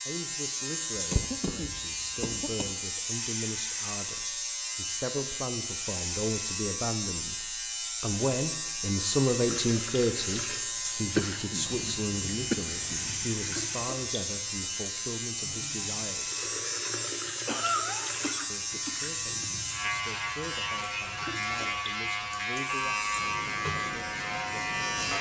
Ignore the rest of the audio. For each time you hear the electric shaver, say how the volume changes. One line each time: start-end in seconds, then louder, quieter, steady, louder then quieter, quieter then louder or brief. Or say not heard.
0.0-25.1 steady.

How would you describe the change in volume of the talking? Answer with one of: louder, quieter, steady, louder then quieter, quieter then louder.
louder then quieter.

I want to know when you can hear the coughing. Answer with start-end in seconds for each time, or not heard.
0.9-2.7, 11.2-13.2, 17.4-19.4.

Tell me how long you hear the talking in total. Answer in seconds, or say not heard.
23 s.